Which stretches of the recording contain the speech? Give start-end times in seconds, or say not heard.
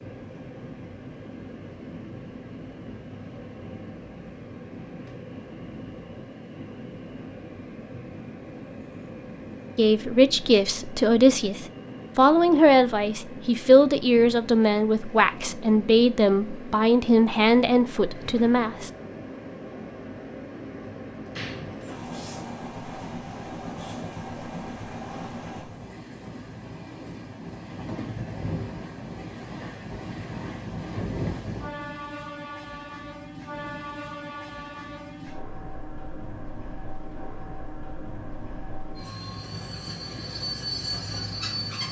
9.8-18.9.